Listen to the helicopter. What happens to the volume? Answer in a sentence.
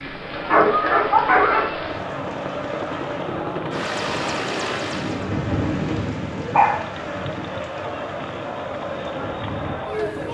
The loudness of the helicopter goes up.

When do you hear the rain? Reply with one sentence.
The rain can be heard from 0.0 to 10.2 s.